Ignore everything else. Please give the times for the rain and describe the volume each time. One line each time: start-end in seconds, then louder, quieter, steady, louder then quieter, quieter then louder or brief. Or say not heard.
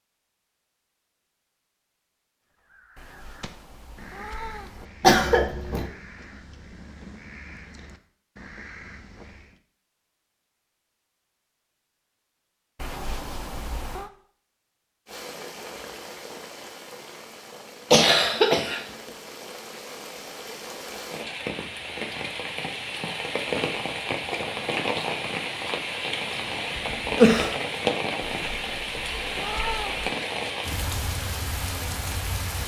15.1-32.6 louder.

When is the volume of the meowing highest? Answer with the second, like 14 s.
30 s.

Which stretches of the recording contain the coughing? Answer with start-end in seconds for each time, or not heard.
5.0-5.8, 17.9-18.8, 26.8-27.5.